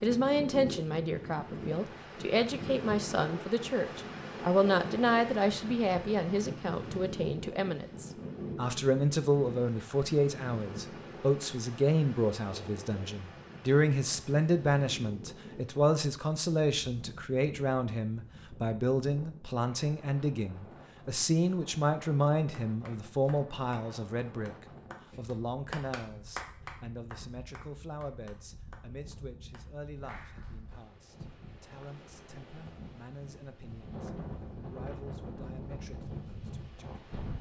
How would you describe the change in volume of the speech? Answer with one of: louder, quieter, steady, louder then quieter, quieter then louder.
quieter.